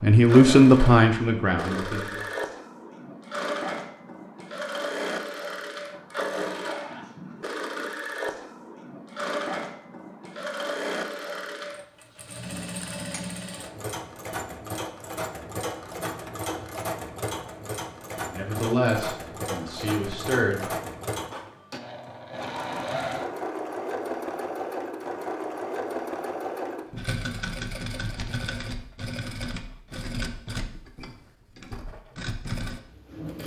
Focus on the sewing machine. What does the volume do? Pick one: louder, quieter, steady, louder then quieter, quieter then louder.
steady.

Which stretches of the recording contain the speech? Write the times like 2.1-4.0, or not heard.
0.0-2.2, 18.3-20.8.